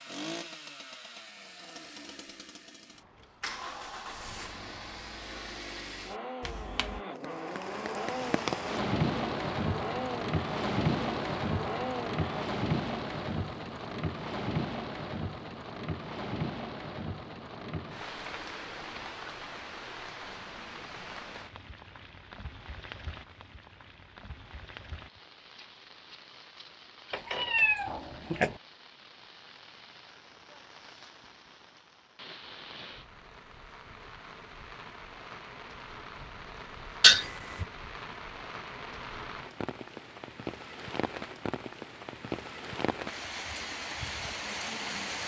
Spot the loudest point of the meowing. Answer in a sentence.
The loudest moment of the meowing is at 37 seconds.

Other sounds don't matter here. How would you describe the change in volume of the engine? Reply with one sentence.
The volume of the engine goes up.